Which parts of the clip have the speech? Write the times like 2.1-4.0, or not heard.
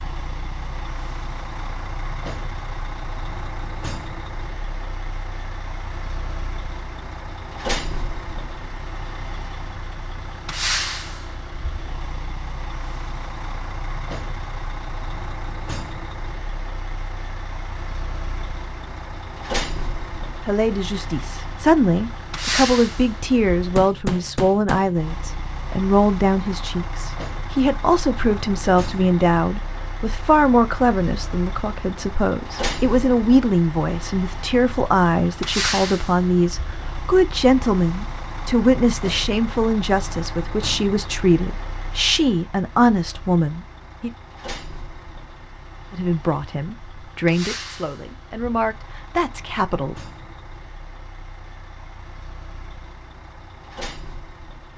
20.4-44.1, 45.9-50.0.